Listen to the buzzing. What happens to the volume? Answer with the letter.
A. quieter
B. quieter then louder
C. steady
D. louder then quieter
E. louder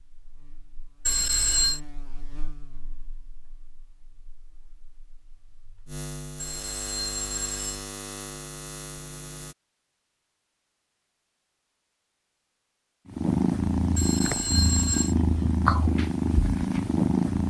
B.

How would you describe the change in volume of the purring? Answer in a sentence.
The loudness of the purring stays about the same.